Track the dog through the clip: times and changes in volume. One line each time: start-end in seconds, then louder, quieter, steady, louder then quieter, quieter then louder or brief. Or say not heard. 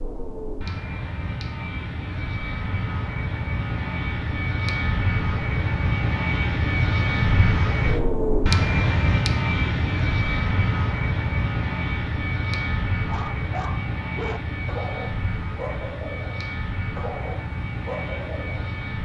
13.1-18.8 steady.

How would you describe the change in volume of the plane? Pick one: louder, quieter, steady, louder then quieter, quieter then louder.
louder then quieter.